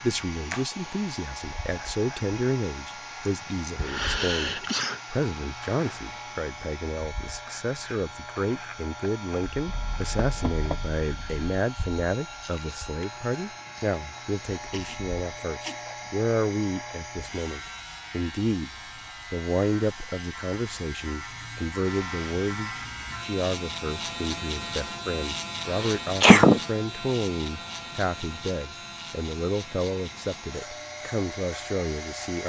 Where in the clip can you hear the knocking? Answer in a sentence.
The knocking can be heard from 9.7 to 11.4 s.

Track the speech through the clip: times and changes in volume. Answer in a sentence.
The speech can be heard from 0.0 to 18.7 s, at a steady volume; and from 19.3 to 32.4 s, at a steady volume.